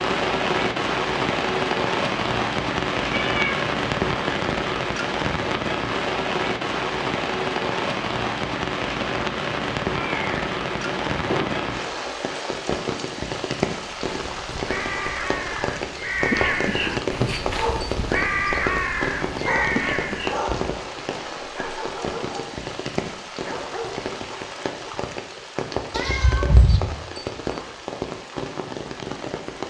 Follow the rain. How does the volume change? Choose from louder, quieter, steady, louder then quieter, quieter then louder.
quieter.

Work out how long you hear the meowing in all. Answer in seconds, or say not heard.
3 s.